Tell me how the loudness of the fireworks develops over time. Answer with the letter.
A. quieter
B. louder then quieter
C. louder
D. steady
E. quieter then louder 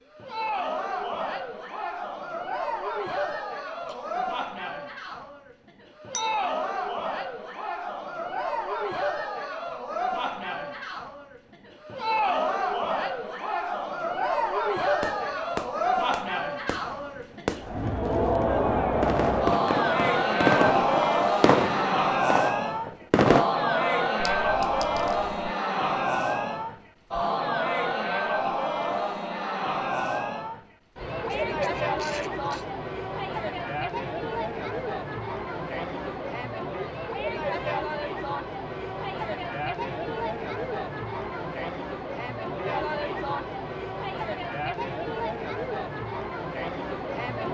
C.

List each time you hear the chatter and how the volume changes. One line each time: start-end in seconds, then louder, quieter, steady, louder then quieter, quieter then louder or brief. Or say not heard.
0.1-47.4 louder then quieter.